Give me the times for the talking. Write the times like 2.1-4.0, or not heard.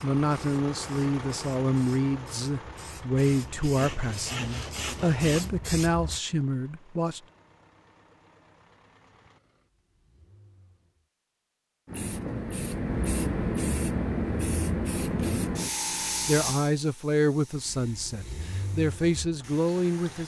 0.0-7.2, 16.2-20.2.